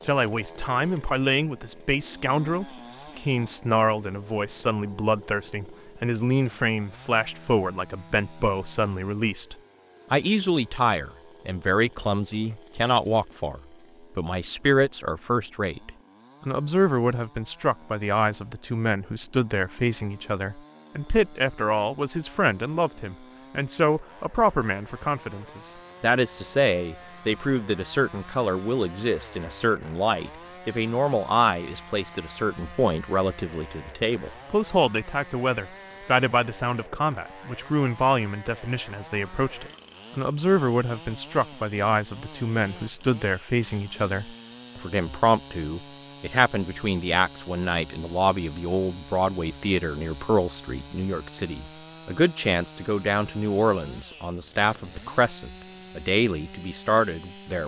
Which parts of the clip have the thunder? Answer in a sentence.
The thunder can't be heard in this clip.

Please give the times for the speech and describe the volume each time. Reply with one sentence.
You can hear the speech from 0.1 to 57.6 s, at a steady volume.